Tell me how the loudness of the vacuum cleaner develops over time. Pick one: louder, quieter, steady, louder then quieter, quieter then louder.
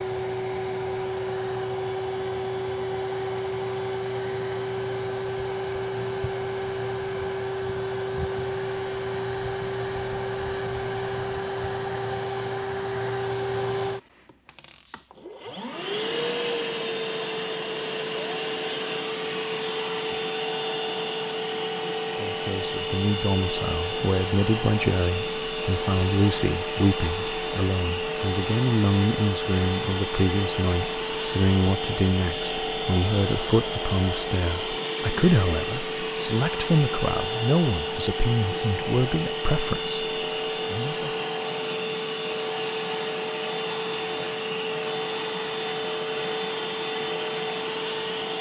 steady.